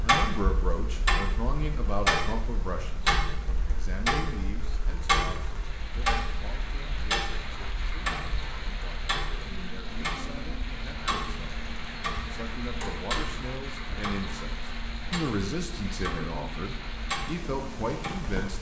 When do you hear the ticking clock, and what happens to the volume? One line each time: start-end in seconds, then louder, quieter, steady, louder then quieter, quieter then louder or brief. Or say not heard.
0.0-18.4 quieter.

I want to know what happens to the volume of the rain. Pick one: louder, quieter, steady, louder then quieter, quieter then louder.
louder.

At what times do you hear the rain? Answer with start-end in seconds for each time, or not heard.
0.0-18.5.